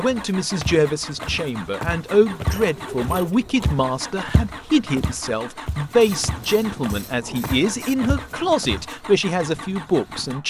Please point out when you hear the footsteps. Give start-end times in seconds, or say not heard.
0.1-8.9.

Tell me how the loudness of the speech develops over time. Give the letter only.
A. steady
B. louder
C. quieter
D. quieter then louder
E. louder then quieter
A.